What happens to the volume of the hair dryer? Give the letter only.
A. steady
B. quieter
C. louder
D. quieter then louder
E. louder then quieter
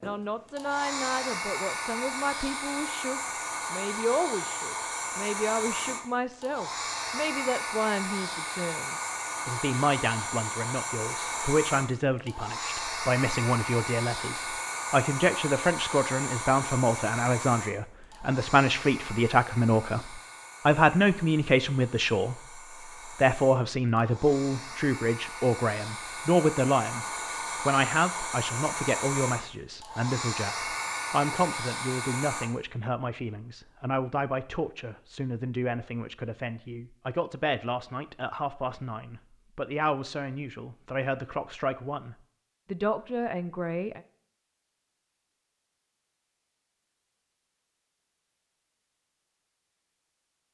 D.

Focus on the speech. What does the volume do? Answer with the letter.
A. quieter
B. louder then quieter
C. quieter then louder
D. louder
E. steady
B.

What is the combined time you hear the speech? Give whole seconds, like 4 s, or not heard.
44 s.